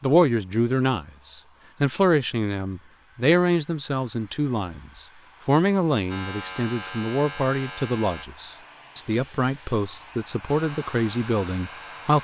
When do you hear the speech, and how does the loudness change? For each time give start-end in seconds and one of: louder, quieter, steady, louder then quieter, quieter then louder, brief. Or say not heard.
0.0-12.1 steady.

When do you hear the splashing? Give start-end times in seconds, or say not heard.
not heard.